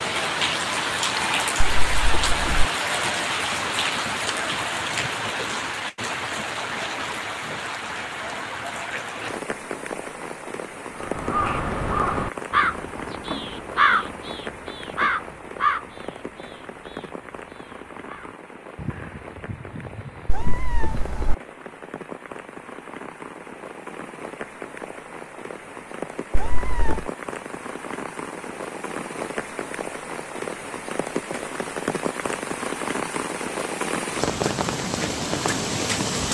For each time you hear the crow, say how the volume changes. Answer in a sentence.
The crow can be heard from 11.0 to 20.9 s, getting quieter then louder.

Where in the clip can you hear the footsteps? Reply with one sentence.
The footsteps can't be heard in this clip.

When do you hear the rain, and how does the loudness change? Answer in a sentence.
You can hear the rain from 0.0 to 36.3 s, getting quieter then louder.